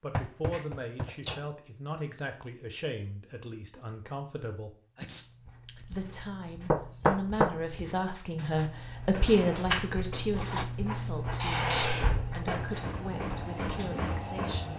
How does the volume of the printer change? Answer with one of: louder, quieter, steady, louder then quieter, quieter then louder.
quieter then louder.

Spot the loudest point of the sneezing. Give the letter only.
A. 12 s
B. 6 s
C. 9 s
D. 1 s
A.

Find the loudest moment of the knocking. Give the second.
7 s.